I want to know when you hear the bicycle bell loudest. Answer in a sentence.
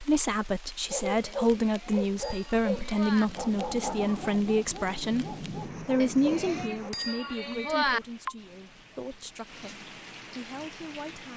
The volume of the bicycle bell peaks at 8 seconds.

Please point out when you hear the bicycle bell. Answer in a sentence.
You can hear the bicycle bell from 1.2 to 3.2 s and from 6.0 to 8.0 s.